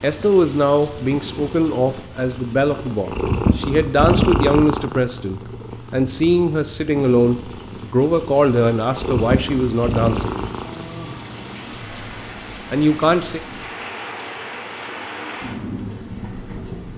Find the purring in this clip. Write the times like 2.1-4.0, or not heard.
0.0-11.6.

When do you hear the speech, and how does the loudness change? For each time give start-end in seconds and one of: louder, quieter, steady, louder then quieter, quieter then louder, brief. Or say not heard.
0.0-10.3 steady
12.7-13.4 brief.